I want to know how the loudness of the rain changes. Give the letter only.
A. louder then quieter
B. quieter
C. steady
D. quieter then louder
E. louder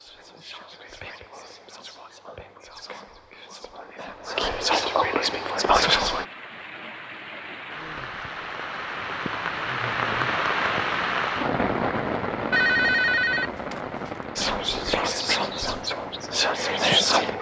A.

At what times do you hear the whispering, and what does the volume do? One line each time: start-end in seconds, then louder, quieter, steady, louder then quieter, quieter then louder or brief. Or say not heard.
0.0-6.2 louder
14.3-17.3 brief.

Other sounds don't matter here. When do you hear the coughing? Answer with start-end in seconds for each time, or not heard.
not heard.